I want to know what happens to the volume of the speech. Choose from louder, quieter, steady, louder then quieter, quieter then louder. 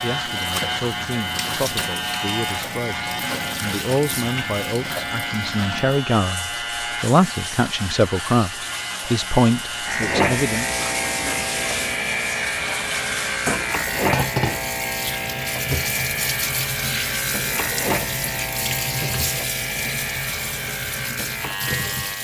louder.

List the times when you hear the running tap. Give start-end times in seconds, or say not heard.
0.0-22.1.